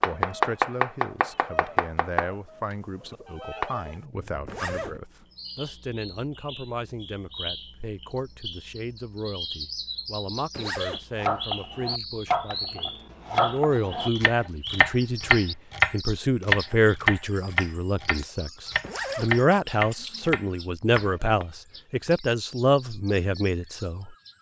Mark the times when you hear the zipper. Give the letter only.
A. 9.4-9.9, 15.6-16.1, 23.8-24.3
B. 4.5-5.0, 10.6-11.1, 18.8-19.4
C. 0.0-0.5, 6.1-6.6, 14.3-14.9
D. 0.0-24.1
B.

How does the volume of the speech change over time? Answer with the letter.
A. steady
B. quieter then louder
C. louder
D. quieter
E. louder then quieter
C.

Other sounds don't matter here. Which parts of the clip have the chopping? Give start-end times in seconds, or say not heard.
0.0-3.7, 11.2-21.2.